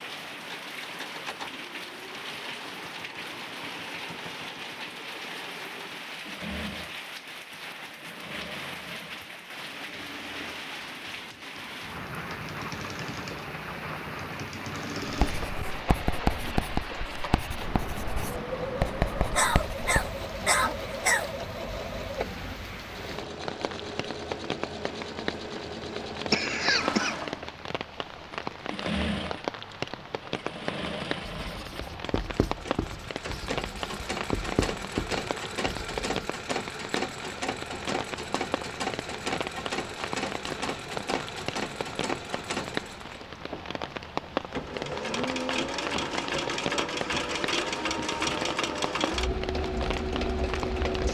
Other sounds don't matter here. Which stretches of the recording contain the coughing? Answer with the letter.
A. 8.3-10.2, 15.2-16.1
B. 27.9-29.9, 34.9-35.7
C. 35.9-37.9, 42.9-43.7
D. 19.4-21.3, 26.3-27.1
D.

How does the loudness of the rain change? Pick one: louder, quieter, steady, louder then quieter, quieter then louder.
steady.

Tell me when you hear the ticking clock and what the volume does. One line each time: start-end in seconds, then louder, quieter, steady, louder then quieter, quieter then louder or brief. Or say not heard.
not heard.